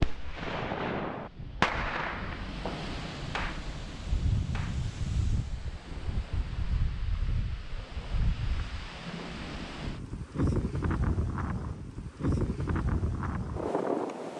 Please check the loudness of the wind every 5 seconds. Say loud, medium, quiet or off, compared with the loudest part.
medium, medium, loud.